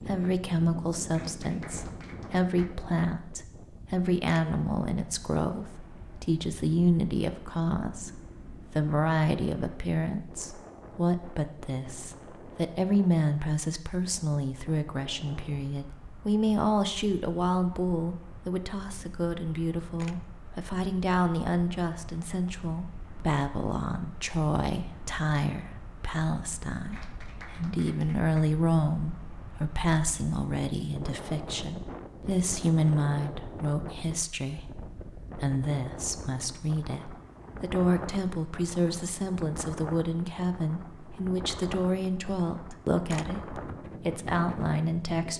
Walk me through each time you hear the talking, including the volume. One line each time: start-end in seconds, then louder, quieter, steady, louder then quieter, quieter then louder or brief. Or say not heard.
0.0-45.3 steady.